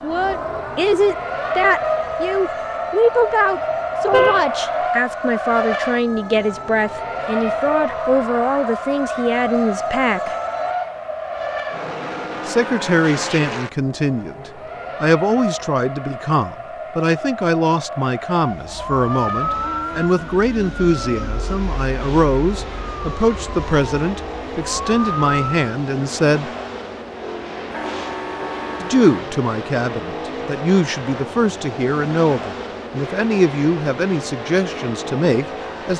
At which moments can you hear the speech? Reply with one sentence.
The speech can be heard from 0.0 to 10.3 s, from 12.4 to 26.5 s and from 28.8 to 35.9 s.